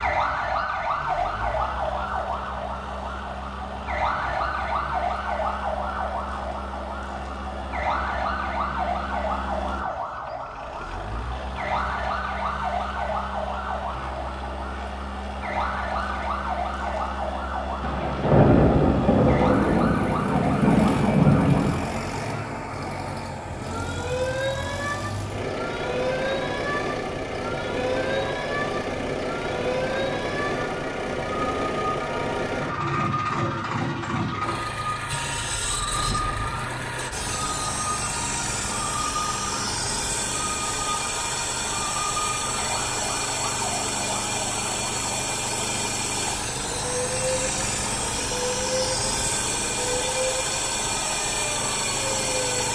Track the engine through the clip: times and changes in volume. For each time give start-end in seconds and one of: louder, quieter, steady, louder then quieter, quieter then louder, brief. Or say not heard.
0.0-52.7 louder.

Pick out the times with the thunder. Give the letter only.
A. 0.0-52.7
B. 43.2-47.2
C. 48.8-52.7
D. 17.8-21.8
D.